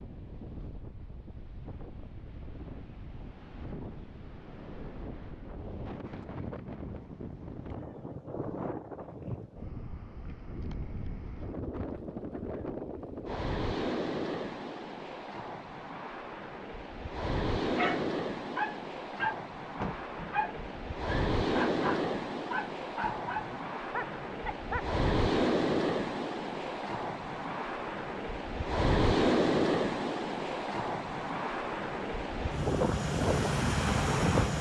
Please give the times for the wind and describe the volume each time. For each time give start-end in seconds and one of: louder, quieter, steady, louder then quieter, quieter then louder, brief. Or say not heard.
0.0-34.5 louder.